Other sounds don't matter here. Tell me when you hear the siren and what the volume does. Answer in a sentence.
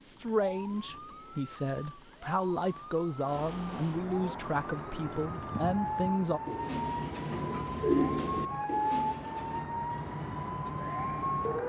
The siren can be heard from 0.0 to 11.6 s, getting louder.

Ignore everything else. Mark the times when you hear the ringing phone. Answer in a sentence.
You can't hear the ringing phone here.